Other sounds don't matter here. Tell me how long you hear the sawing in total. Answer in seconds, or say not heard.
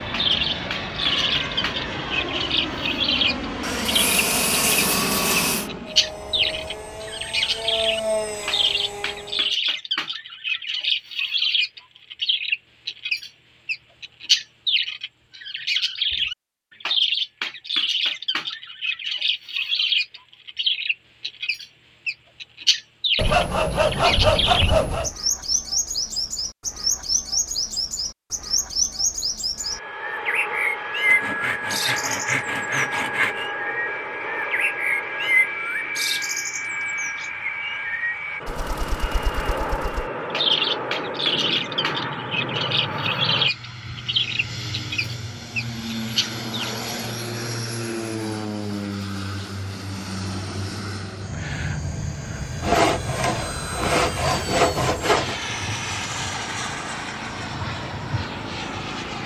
9 s.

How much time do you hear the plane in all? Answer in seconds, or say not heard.
39 s.